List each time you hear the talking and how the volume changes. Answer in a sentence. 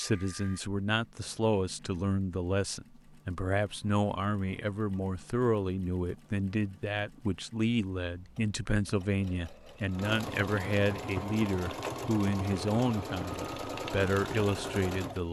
You can hear the talking from 0.0 to 15.2 s, at a steady volume.